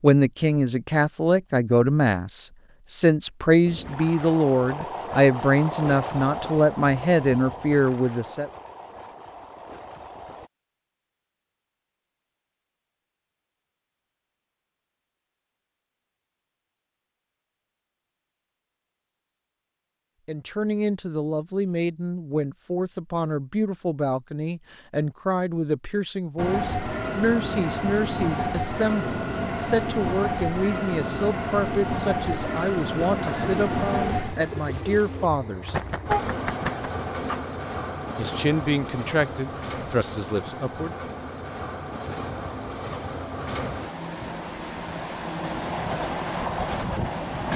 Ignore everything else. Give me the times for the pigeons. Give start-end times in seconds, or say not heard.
32.2-37.5.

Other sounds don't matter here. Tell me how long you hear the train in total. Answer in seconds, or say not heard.
28 s.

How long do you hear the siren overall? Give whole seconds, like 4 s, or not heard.
not heard.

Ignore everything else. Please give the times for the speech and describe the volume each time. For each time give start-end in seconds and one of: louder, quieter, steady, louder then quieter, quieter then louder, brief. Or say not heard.
0.0-8.5 steady
20.2-35.8 steady
38.1-41.0 brief.